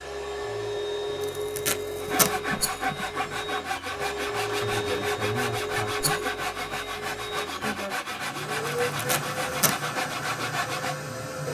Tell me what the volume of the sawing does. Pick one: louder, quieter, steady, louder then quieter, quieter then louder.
steady.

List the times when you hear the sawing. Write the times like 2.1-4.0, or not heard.
2.0-10.9.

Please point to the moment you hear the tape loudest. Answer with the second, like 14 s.
2 s.